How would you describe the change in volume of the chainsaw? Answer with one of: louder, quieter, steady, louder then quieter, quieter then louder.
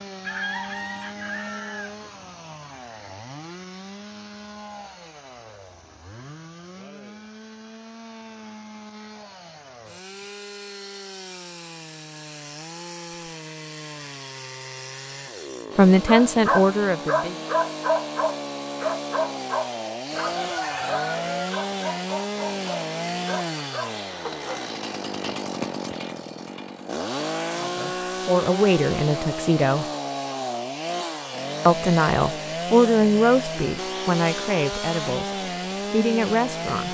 louder.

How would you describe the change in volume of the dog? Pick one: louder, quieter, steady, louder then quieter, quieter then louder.
quieter.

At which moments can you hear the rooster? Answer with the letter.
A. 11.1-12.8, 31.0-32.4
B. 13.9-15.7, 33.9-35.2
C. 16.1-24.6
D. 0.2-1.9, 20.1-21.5
D.